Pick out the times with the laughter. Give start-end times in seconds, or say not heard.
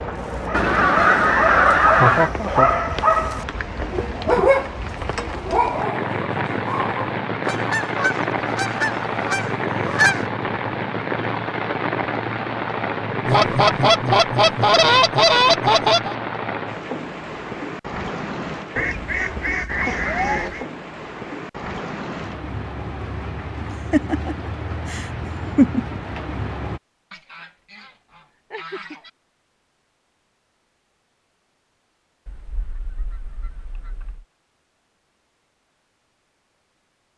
1.9-2.7, 23.6-26.0.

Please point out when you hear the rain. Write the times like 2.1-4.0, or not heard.
0.0-26.8.